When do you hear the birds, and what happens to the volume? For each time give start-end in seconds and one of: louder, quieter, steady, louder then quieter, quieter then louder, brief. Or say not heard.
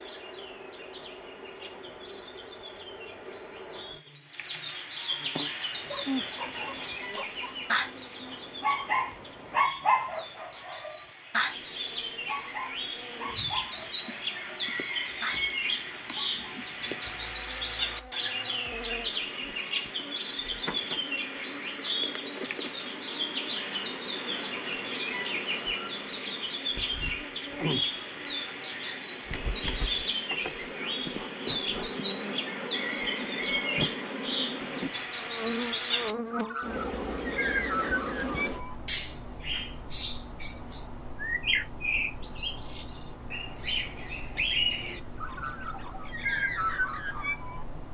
0.0-47.6 louder.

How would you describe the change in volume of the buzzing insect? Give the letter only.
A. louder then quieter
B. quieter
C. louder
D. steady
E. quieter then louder
C.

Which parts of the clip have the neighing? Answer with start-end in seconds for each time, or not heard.
not heard.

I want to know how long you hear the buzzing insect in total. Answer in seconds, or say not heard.
48 s.